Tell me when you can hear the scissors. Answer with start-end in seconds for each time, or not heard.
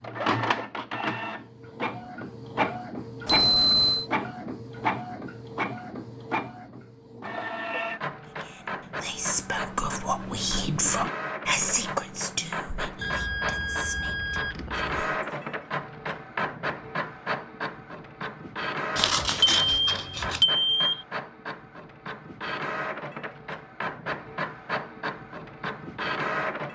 18.9-20.4.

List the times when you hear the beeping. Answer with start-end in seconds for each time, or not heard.
3.2-4.0, 13.0-14.9, 19.4-21.1.